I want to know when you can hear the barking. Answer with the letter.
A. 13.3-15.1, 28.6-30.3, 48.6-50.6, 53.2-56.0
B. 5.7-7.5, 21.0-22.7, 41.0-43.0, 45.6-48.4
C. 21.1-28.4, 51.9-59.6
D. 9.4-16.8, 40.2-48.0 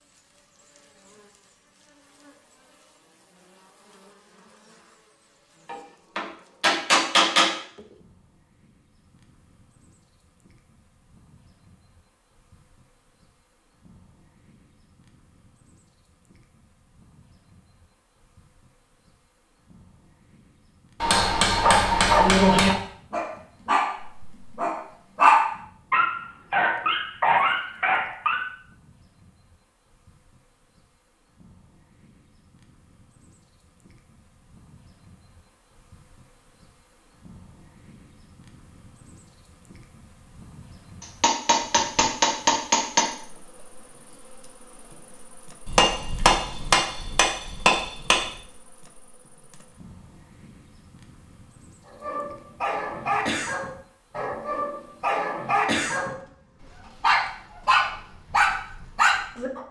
C.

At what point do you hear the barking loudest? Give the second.
25 s.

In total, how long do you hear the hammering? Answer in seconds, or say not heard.
8 s.